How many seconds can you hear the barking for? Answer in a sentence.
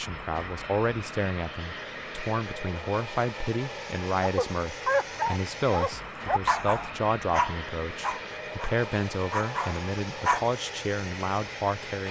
You can hear the barking for 6 seconds altogether.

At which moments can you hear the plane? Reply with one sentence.
The plane can be heard from 0.0 to 12.0 s.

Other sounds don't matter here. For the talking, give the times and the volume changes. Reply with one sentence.
You can hear the talking from 0.0 to 12.0 s, at a steady volume.